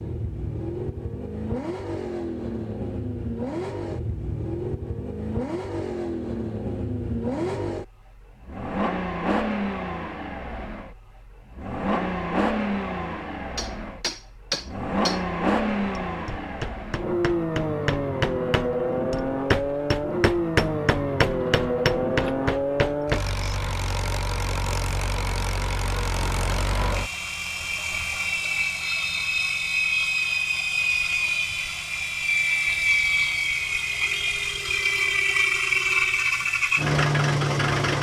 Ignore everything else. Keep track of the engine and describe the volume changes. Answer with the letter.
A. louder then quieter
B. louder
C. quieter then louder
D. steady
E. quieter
B.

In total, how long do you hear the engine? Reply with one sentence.
The engine can be heard for 38 seconds in total.